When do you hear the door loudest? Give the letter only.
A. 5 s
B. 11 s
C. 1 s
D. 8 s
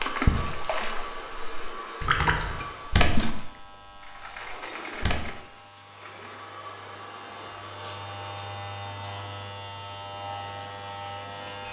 A.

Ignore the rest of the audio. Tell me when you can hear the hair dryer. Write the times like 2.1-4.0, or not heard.
0.0-3.1, 5.8-11.3.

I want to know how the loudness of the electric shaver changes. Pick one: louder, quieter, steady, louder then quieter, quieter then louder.
louder.